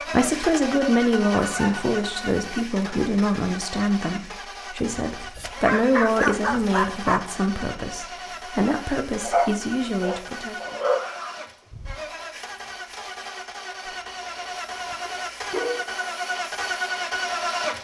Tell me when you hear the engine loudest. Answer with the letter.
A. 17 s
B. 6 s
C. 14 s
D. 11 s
A.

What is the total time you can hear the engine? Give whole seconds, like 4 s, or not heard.
18 s.